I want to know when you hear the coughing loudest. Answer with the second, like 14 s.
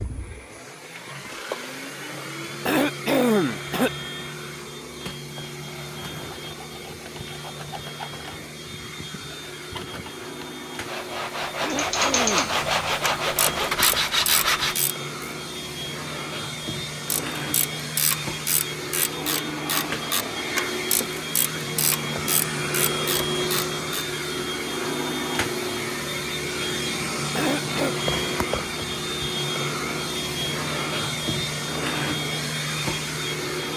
3 s.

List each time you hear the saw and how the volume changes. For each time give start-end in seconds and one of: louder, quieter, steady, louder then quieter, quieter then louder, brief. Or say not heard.
5.9-14.9 louder.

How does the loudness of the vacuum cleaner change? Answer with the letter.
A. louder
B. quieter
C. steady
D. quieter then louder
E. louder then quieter
A.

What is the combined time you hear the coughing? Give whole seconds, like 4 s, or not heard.
3 s.